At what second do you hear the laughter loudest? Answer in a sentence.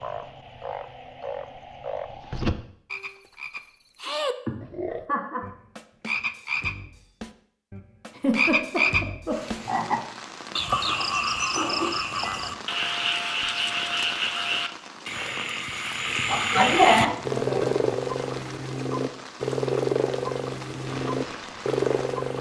The volume of the laughter peaks at 17 seconds.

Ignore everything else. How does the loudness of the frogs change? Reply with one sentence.
The volume of the frogs goes up.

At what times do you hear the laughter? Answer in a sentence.
The laughter can be heard from 4.5 to 5.5 s, from 8.1 to 9.7 s and from 16.2 to 17.8 s.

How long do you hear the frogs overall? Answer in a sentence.
The frogs can be heard for 22 seconds in total.